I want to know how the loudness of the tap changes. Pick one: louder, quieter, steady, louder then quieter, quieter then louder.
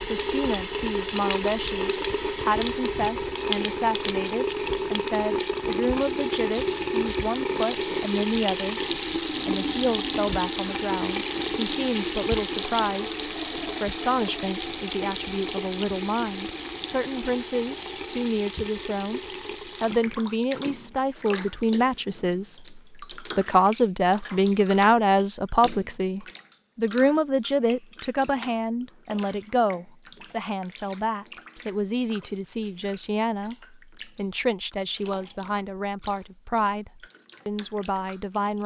quieter.